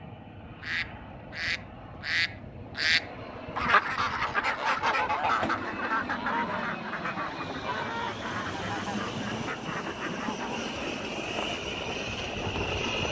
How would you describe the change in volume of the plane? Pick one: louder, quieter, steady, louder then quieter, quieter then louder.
louder.